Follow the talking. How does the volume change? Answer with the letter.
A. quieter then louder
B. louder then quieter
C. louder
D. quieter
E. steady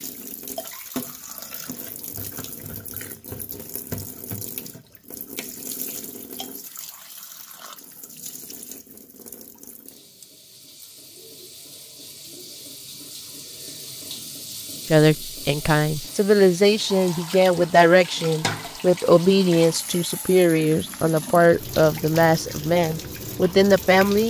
E.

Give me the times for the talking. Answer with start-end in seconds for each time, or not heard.
14.8-24.2.